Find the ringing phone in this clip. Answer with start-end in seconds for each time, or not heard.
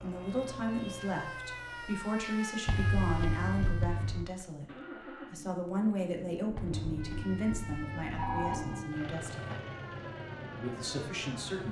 2.6-4.2, 6.5-8.8.